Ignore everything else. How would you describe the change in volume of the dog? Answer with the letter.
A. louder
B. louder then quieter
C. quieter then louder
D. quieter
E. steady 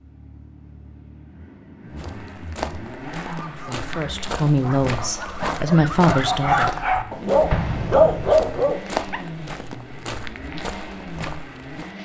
A.